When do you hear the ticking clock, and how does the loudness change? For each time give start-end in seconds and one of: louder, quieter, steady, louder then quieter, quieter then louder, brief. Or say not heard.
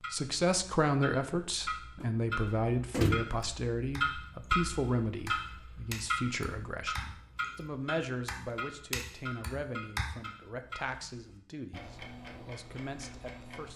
0.0-13.7 louder then quieter.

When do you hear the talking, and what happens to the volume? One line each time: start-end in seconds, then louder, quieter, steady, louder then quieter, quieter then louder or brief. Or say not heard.
0.1-13.7 quieter.